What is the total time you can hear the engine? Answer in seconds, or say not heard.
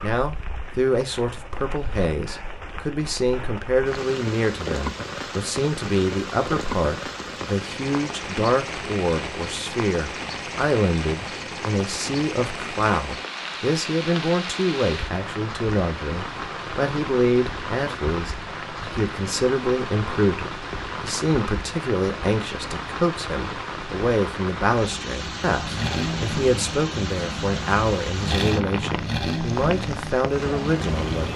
6 s.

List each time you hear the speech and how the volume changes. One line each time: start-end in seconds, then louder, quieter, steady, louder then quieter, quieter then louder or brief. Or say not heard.
0.0-31.3 steady.